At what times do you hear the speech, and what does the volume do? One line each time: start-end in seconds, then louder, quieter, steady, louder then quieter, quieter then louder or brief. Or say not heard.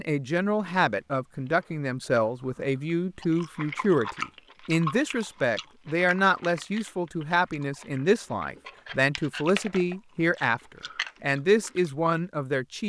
0.0-12.8 steady.